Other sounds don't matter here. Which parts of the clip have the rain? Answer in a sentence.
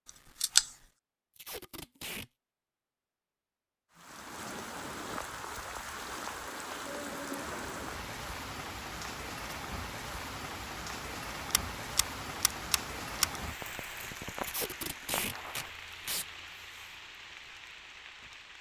The rain can be heard from 3.9 to 18.5 s.